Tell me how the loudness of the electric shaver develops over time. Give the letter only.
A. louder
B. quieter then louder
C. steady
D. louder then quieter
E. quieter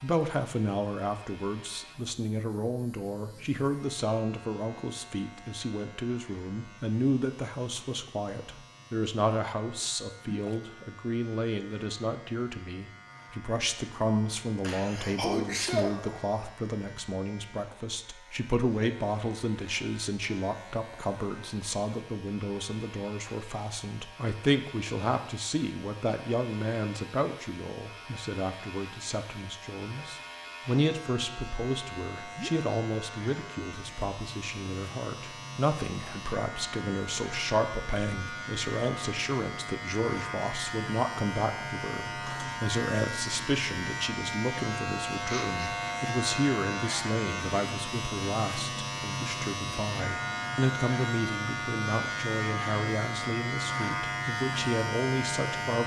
A.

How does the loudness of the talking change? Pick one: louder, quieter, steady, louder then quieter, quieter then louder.
steady.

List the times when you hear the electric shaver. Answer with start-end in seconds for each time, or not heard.
0.0-55.8.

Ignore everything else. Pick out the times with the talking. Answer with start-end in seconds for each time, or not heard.
0.0-55.8.